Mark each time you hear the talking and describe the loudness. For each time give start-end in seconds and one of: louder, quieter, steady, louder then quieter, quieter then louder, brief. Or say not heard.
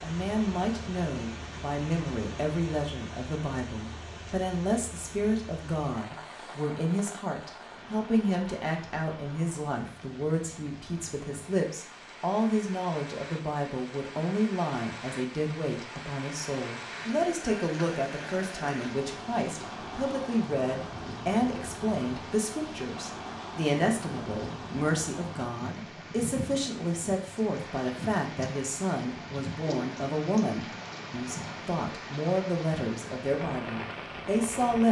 0.0-34.8 steady.